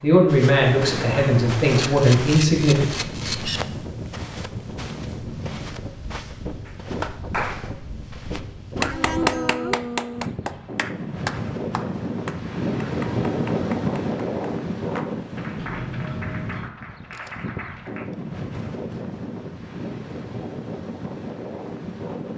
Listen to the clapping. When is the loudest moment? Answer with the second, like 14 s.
9 s.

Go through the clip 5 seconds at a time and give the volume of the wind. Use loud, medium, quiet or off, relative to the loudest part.
medium, medium, loud, medium, medium.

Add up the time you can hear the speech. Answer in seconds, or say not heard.
3 s.